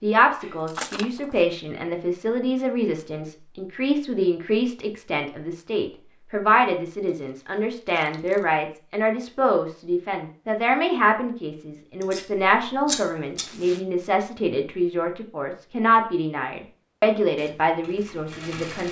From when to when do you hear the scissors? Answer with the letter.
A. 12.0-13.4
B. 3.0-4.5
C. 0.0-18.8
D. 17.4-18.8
A.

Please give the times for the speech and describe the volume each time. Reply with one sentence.
You can hear the speech from 0.0 to 18.8 s, at a steady volume.